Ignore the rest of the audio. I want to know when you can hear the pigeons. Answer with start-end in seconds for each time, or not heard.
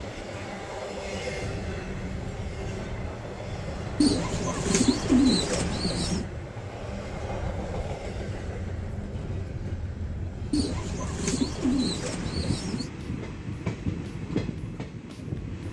4.0-6.2, 10.5-12.9.